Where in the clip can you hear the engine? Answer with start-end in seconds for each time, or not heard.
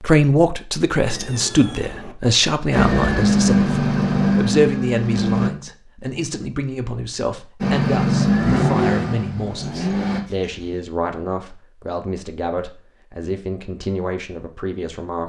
2.7-5.5, 7.6-10.2.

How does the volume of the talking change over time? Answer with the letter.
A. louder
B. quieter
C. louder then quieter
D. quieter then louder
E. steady
B.